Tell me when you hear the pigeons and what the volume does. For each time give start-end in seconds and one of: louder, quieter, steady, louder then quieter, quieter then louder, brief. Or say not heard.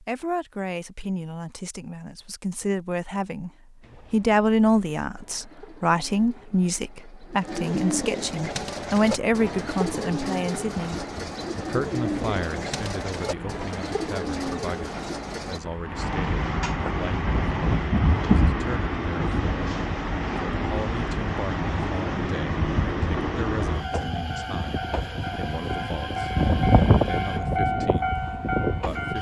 3.8-15.6 louder.